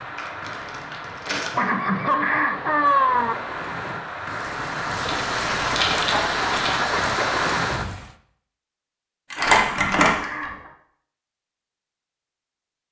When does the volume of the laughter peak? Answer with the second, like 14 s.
3 s.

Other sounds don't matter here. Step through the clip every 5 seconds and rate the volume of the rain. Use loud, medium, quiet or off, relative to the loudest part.
medium, loud, off.